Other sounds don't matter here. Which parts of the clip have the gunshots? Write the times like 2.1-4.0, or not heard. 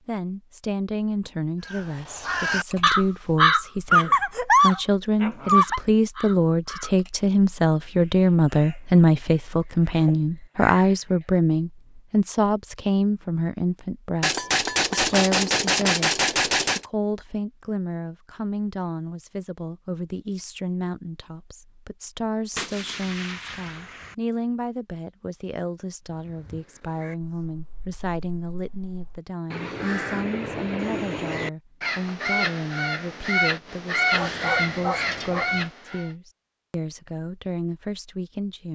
14.2-16.9, 22.6-24.1.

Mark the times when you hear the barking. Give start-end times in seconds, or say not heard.
3.9-5.8, 34.1-35.6.